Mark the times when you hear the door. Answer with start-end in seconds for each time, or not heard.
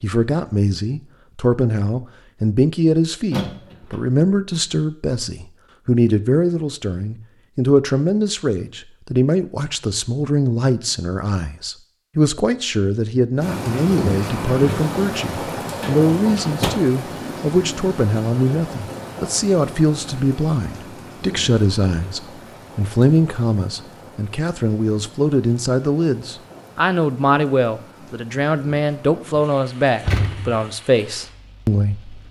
3.3-4.0, 15.8-16.8, 30.0-30.6.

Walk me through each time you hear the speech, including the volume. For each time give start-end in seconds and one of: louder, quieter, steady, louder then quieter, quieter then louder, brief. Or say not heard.
0.0-32.2 steady.